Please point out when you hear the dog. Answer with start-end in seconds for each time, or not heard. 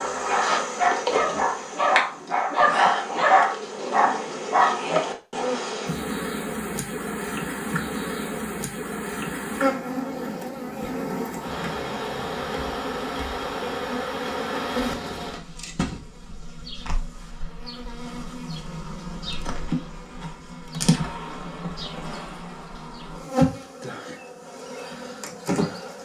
0.2-5.0.